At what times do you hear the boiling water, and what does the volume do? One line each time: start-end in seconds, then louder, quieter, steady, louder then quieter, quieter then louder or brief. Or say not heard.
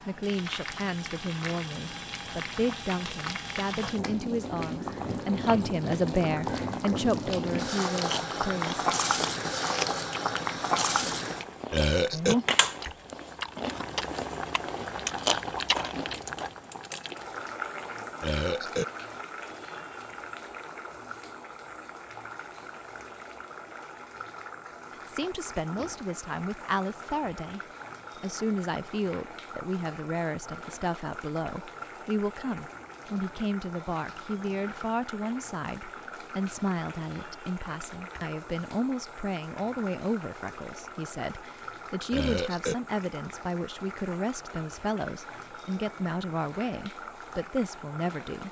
0.0-48.4 quieter.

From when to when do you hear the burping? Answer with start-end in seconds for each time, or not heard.
11.7-12.3, 18.2-18.9, 42.1-42.8.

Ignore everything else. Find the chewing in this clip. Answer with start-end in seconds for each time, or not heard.
7.9-16.4.